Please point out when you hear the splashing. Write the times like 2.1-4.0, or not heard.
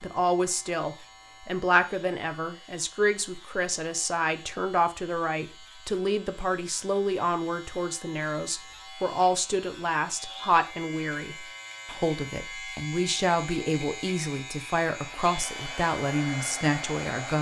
not heard.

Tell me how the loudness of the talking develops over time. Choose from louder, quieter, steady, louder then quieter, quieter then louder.
steady.